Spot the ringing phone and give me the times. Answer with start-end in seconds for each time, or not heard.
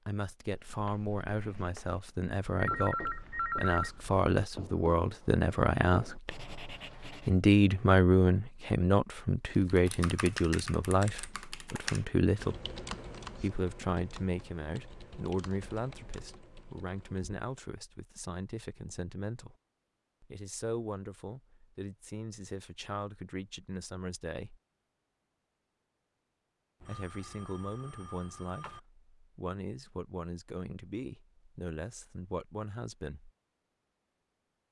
1.9-3.9, 26.8-28.8.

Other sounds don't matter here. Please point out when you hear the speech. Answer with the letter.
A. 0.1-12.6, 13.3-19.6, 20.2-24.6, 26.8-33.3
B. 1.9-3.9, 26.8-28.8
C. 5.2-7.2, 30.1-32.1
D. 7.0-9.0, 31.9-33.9
A.